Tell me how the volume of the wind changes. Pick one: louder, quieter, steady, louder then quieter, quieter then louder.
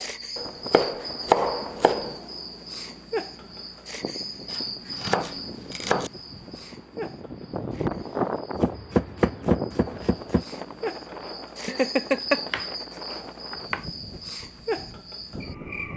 louder then quieter.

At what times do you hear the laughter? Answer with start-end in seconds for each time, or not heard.
11.7-12.4.